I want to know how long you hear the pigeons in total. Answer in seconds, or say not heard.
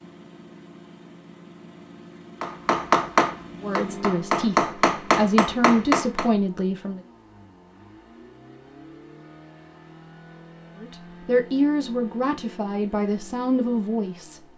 not heard.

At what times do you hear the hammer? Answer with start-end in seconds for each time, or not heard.
2.4-6.3.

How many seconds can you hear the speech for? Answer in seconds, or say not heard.
7 s.